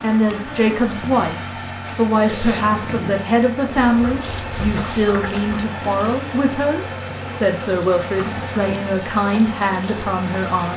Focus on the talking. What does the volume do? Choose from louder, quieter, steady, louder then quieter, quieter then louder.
steady.